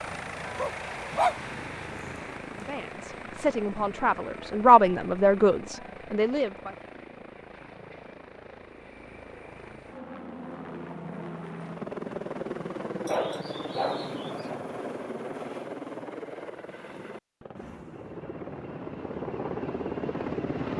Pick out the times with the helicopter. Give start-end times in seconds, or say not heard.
0.0-20.7.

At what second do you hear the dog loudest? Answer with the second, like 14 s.
1 s.